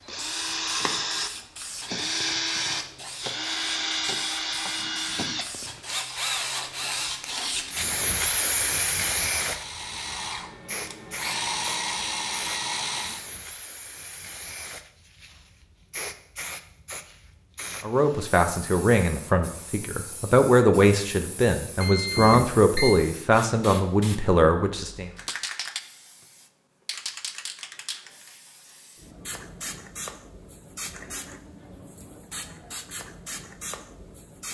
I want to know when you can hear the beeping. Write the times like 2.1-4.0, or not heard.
21.8-22.9.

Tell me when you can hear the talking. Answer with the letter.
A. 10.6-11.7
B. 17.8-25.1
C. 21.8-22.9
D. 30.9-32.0
B.